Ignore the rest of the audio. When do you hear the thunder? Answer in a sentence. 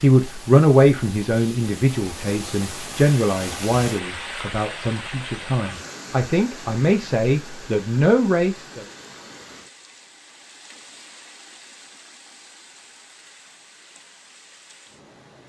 You can't hear the thunder here.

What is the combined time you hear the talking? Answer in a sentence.
The talking can be heard for 9 seconds in total.